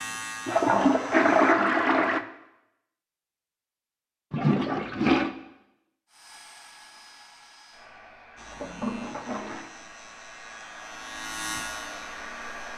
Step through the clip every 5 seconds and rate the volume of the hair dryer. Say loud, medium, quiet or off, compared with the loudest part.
off, medium, loud.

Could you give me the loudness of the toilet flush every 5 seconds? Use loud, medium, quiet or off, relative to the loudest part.
loud, medium, off.